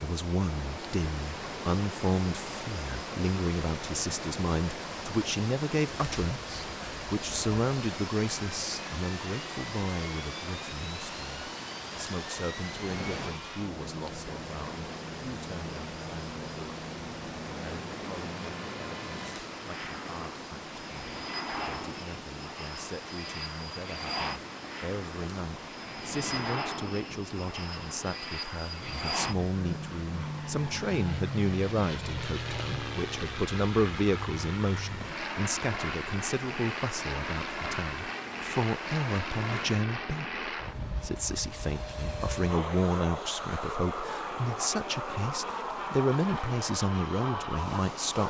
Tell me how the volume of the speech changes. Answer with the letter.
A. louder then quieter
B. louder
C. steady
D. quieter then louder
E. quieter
D.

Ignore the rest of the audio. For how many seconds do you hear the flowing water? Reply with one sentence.
You can hear the flowing water for 48 seconds altogether.